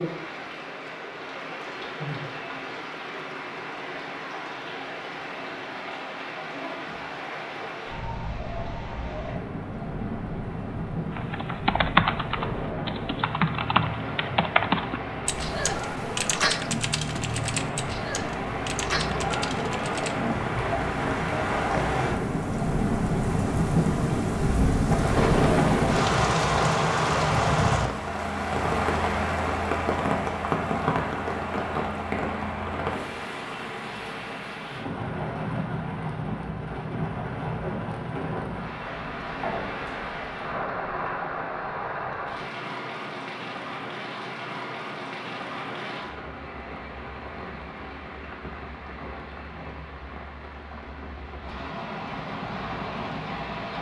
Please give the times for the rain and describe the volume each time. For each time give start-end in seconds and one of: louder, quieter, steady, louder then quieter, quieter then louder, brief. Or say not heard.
0.0-53.7 louder then quieter.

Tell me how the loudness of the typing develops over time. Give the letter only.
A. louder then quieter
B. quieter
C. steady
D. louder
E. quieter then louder
B.